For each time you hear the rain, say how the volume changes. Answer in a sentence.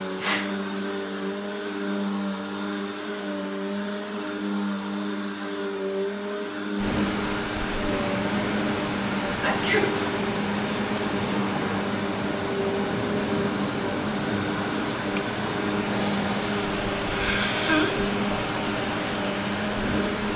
The rain can be heard from 6.8 to 20.3 s, at a steady volume.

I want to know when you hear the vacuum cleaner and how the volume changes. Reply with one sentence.
The vacuum cleaner can be heard from 0.0 to 20.3 s, at a steady volume.